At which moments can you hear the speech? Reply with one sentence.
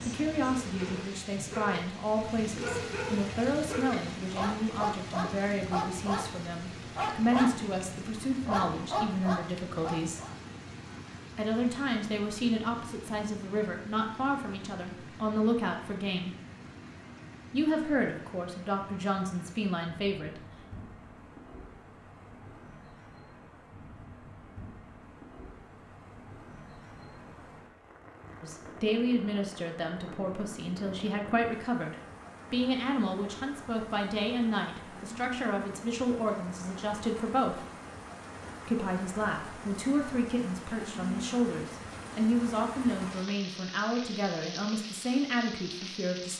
You can hear the speech from 0.1 to 10.2 s, from 11.3 to 16.4 s, from 17.5 to 20.4 s, from 28.4 to 37.6 s and from 38.6 to 46.3 s.